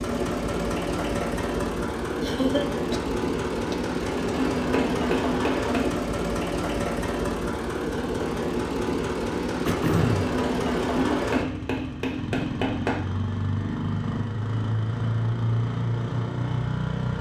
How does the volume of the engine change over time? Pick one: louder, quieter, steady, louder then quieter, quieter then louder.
steady.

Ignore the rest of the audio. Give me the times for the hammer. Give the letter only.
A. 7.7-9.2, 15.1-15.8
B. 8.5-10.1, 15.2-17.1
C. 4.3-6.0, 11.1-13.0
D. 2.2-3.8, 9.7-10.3
C.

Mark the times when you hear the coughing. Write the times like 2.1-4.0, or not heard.
2.2-3.8, 9.7-10.3.